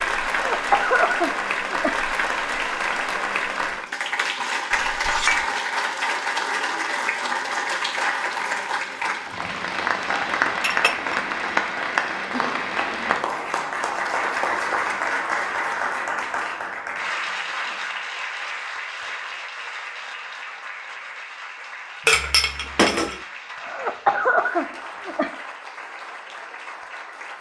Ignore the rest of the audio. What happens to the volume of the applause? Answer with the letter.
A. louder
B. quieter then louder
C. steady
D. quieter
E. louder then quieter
D.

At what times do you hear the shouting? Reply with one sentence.
You can't hear the shouting here.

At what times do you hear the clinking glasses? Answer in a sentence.
You can hear the clinking glasses from 4.7 to 5.5 s, from 10.6 to 11.2 s and from 22.1 to 23.2 s.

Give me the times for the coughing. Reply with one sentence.
You can hear the coughing from 0.2 to 1.9 s and from 23.6 to 25.3 s.